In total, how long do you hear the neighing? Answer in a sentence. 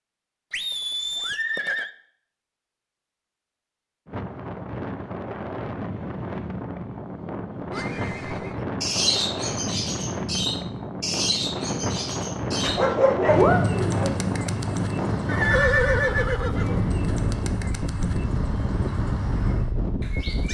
The neighing can be heard for 4 seconds in total.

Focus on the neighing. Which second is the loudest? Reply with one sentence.
The loudest moment of the neighing is at 16 seconds.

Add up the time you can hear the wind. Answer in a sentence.
The wind can be heard for 16 seconds in total.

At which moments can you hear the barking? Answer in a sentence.
The barking can be heard from 12.6 to 14.1 s.